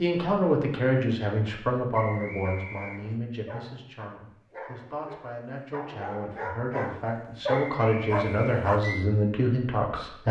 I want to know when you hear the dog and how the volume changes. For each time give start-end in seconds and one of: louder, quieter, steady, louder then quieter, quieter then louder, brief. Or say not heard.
2.4-9.1 louder.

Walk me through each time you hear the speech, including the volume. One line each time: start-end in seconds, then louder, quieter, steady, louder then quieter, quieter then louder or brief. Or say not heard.
0.0-10.2 quieter then louder.